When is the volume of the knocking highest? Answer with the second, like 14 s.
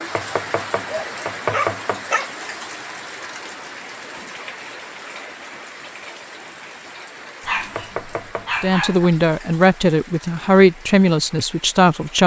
2 s.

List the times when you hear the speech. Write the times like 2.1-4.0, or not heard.
8.6-12.2.